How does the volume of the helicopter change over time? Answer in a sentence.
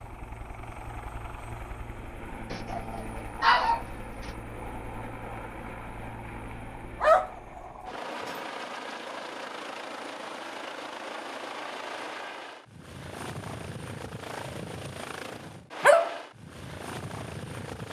The volume of the helicopter stays about the same.